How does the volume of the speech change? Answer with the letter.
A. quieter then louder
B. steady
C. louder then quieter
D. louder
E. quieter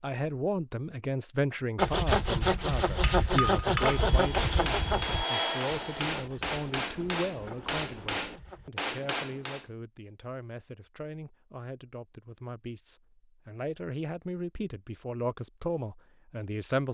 A.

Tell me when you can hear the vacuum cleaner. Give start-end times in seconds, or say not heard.
3.8-6.2.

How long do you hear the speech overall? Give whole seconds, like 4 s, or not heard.
17 s.